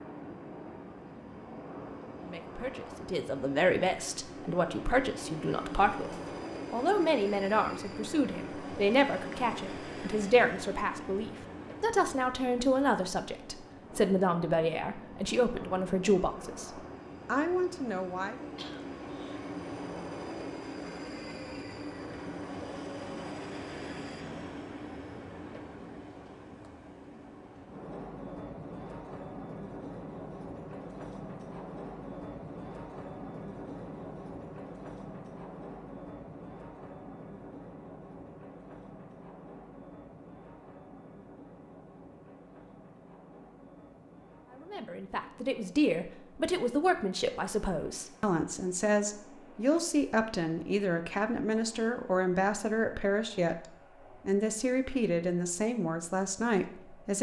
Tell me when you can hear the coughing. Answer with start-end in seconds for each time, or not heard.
18.6-19.4.